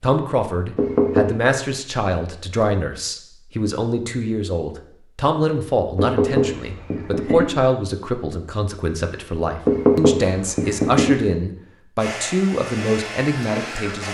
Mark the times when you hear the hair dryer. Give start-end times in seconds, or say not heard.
11.9-14.0.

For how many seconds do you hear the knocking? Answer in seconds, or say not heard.
4 s.